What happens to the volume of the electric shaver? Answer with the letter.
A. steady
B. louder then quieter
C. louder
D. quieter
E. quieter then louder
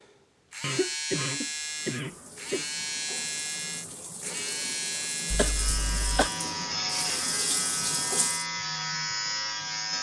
A.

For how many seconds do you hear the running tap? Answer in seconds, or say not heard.
7 s.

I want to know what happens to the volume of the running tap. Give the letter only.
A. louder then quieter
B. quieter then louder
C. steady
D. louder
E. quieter
D.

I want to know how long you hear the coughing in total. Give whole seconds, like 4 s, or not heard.
3 s.